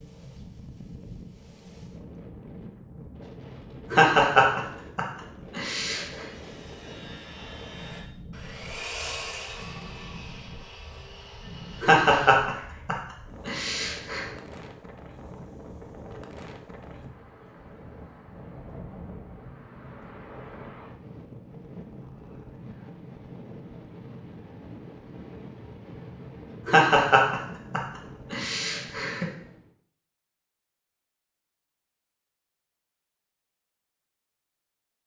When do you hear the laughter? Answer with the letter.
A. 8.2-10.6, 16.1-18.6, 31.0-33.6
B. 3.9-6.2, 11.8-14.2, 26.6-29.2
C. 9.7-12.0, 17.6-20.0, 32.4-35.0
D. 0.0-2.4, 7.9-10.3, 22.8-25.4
B.